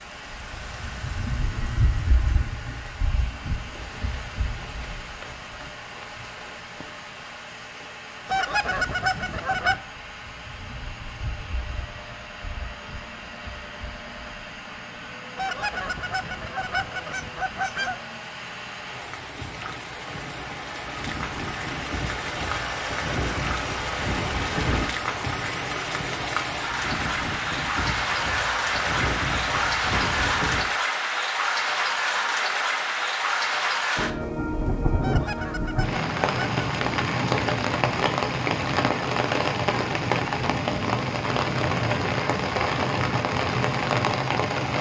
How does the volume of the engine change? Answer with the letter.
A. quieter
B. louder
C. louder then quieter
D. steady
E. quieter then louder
B.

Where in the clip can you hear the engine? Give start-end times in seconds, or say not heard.
0.0-30.7.